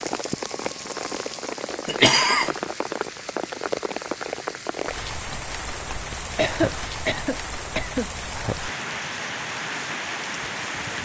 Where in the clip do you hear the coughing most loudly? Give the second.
2 s.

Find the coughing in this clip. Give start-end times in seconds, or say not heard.
1.9-2.5, 6.3-8.1.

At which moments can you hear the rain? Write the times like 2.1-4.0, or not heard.
0.0-11.0.